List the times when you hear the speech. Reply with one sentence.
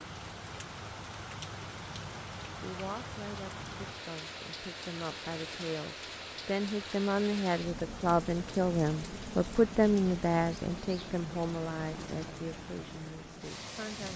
The speech can be heard from 2.6 to 14.1 s.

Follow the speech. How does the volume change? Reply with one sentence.
The volume of the speech goes up, then down.